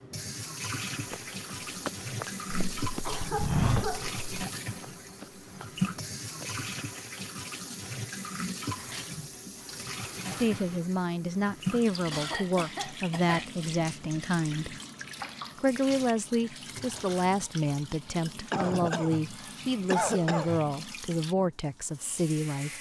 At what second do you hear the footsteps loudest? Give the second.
4 s.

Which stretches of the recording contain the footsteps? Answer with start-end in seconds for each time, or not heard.
1.1-6.5.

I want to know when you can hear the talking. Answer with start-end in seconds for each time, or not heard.
10.2-14.8, 15.6-22.7.